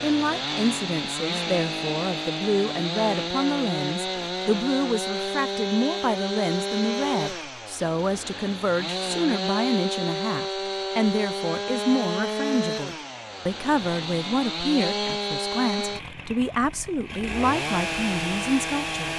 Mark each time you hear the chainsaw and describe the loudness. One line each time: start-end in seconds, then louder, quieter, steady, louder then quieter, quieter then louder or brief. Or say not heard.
0.0-19.1 steady.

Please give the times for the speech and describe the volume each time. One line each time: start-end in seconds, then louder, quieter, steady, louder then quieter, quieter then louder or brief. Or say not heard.
0.0-19.1 steady.